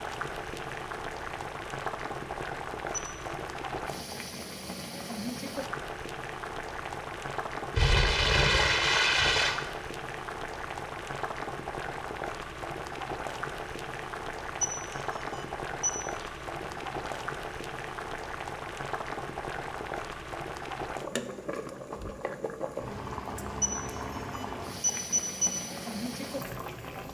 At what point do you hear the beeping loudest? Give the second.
25 s.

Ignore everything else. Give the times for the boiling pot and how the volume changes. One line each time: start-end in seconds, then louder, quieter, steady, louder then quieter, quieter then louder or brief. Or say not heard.
0.0-27.0 steady.